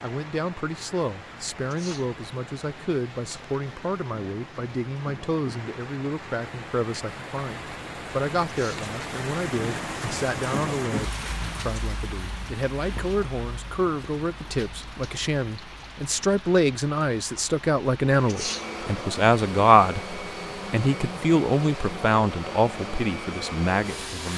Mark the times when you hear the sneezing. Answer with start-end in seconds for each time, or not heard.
1.6-2.1, 8.4-8.9, 18.2-18.7.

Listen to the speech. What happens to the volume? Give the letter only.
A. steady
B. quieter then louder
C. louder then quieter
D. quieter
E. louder
E.